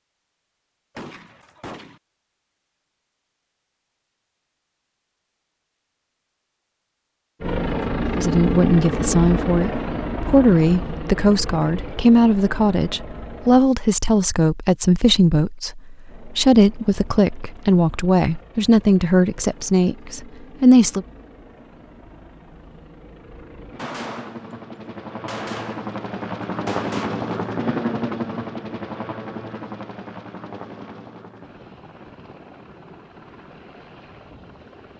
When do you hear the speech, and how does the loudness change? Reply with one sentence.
You can hear the speech from 8.2 to 21.1 s, at a steady volume.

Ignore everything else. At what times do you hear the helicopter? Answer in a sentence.
You can hear the helicopter from 7.4 to 13.6 s and from 16.1 to 34.9 s.